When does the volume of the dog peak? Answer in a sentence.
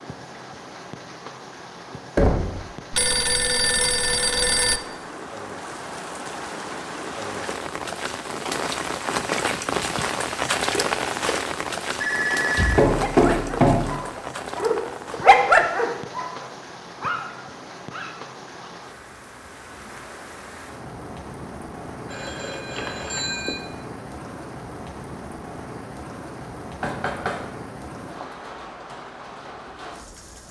The loudest moment of the dog is at 15 seconds.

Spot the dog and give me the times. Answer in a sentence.
The dog can be heard from 12.9 to 18.7 s.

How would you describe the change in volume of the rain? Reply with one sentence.
The volume of the rain goes up, then down.